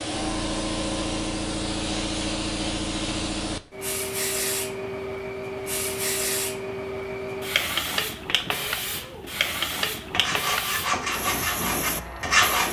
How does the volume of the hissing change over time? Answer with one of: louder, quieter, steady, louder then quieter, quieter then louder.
steady.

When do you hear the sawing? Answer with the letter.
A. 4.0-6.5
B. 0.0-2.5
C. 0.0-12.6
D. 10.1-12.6
D.